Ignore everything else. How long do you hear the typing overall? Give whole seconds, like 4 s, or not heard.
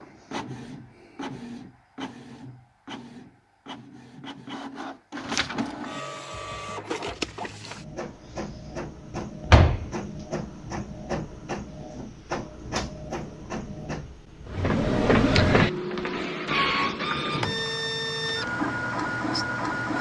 not heard.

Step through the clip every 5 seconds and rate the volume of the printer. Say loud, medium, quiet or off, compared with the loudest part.
quiet, medium, medium, loud.